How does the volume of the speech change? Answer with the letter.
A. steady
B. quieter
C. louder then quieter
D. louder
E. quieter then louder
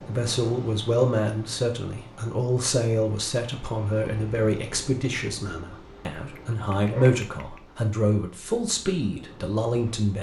A.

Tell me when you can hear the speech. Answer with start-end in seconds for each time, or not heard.
0.1-10.1.